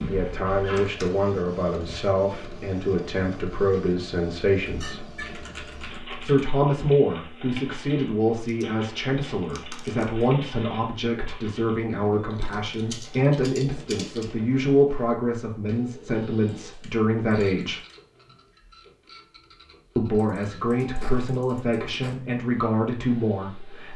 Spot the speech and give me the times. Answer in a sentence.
You can hear the speech from 0.1 to 5.0 s, from 6.2 to 17.8 s and from 19.9 to 23.9 s.